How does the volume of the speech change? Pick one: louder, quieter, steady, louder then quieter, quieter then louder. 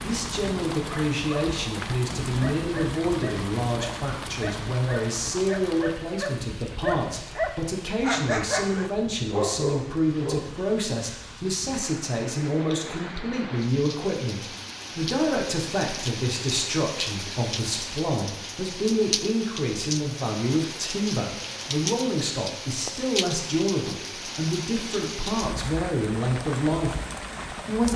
steady.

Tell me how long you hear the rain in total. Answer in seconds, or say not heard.
28 s.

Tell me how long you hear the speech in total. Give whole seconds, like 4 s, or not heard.
28 s.